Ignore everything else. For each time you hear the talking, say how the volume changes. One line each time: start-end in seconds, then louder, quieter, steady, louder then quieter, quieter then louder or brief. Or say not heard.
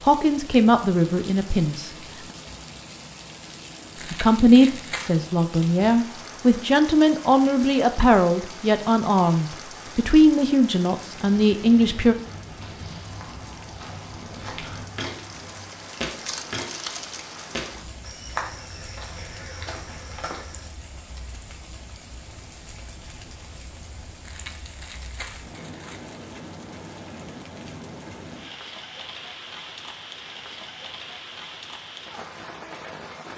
0.0-1.9 brief
4.1-12.2 steady.